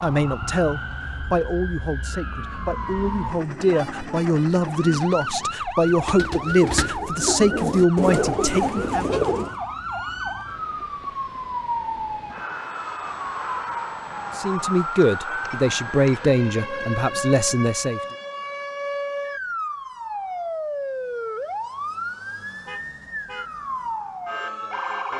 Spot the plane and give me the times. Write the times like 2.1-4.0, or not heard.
not heard.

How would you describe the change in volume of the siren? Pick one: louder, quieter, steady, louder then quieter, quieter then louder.
steady.